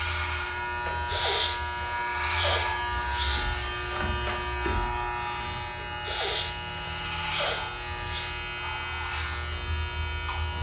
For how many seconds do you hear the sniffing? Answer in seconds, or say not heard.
5 s.